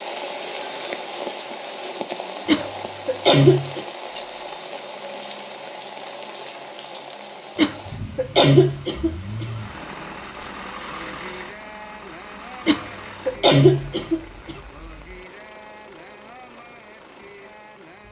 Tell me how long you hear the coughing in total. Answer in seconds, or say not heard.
5 s.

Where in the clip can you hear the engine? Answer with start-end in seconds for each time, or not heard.
8.9-18.0.